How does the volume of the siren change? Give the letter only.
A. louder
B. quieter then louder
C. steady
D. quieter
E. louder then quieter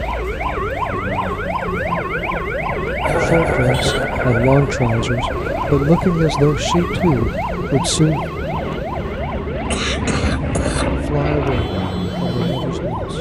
D.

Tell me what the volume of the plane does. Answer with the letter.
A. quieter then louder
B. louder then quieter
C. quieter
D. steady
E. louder
E.